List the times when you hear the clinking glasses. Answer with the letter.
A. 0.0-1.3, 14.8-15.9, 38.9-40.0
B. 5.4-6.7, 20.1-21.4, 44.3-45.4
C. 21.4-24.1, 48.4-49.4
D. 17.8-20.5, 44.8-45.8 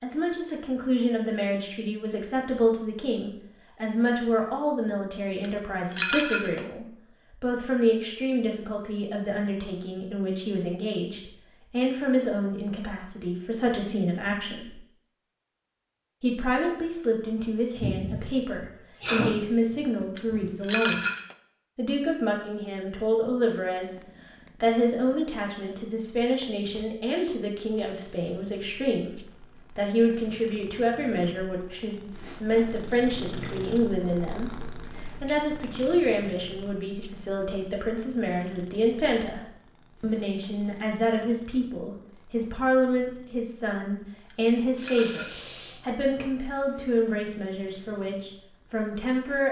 B.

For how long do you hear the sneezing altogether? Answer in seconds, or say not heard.
4 s.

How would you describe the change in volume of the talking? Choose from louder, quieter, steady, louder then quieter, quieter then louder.
steady.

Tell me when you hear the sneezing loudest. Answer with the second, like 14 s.
19 s.